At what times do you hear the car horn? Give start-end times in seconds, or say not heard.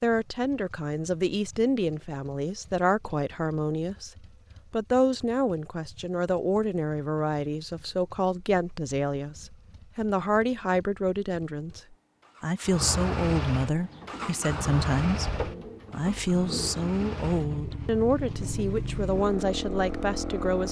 not heard.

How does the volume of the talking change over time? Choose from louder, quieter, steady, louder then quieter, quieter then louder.
steady.